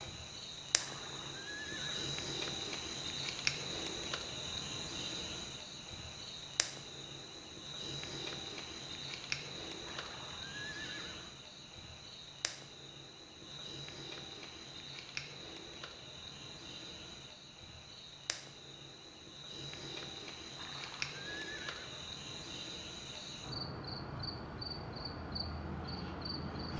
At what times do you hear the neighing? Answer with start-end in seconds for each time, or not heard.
0.8-2.1, 9.8-11.4, 20.6-22.1.